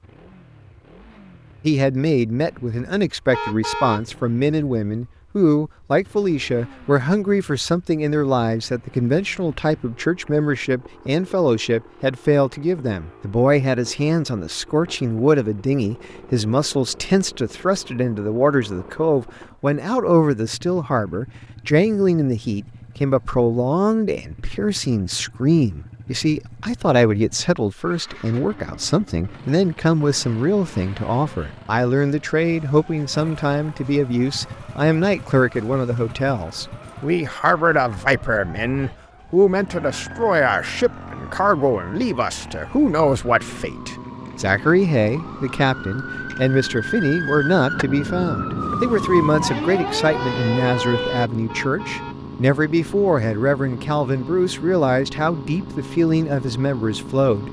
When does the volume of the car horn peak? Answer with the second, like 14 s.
4 s.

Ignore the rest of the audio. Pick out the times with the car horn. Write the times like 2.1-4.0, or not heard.
3.3-4.0, 51.5-52.1.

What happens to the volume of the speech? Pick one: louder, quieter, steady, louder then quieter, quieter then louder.
steady.